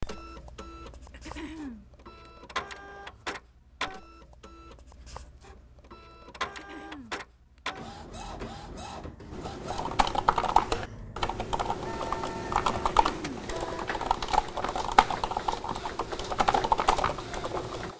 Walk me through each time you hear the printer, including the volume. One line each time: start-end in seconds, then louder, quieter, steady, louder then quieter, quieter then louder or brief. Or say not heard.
0.0-17.9 steady.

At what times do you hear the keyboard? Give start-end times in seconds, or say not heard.
9.3-17.9.